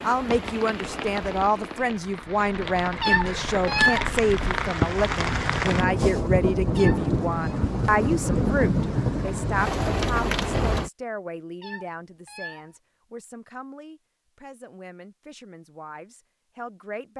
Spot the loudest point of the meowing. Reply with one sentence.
The loudest moment of the meowing is at 4 seconds.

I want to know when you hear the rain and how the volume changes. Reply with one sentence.
You can hear the rain from 0.0 to 10.9 s, getting louder.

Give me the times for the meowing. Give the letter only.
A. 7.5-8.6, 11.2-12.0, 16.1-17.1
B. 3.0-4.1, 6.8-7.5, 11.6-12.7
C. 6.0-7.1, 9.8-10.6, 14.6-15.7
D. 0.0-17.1
B.